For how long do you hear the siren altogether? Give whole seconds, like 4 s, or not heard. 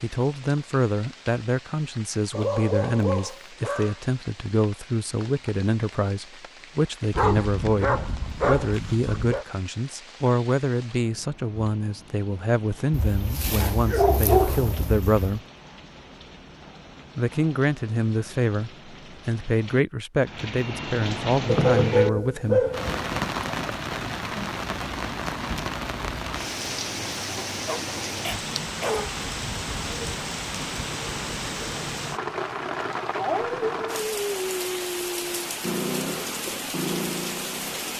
not heard.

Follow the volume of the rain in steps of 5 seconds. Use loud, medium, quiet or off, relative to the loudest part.
quiet, quiet, quiet, quiet, loud, loud, loud, loud.